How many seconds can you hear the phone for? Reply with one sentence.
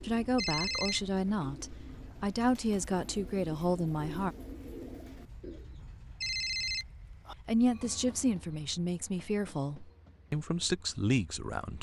The phone can be heard for 2 seconds in total.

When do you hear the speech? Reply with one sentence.
The speech can be heard from 0.0 to 4.3 s and from 7.5 to 11.7 s.